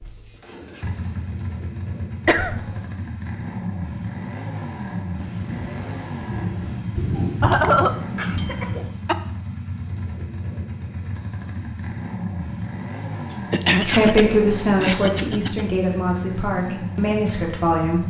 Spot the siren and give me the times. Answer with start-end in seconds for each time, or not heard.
not heard.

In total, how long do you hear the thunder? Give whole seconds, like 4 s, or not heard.
4 s.